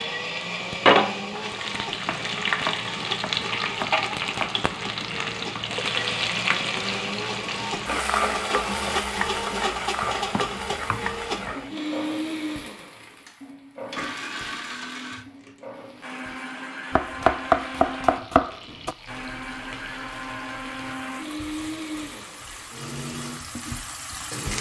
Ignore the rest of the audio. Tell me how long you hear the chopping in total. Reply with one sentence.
You can hear the chopping for 6 seconds altogether.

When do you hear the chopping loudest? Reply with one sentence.
The loudest moment of the chopping is at 17 seconds.